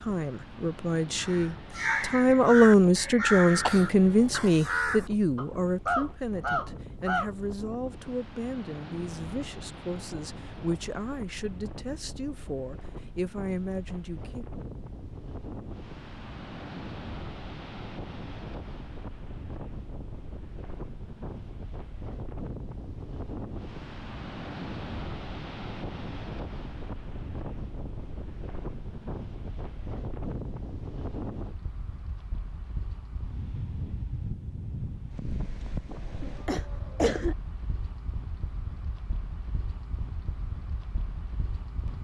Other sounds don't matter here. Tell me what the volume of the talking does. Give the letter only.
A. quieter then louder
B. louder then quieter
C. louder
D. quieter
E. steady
D.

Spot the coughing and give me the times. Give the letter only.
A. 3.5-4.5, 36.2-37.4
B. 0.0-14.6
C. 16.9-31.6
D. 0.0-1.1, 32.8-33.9
A.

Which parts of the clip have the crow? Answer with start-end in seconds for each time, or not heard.
1.1-7.3.